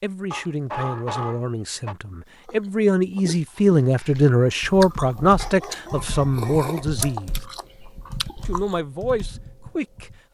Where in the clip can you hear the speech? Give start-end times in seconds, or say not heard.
0.0-7.5, 8.4-10.1.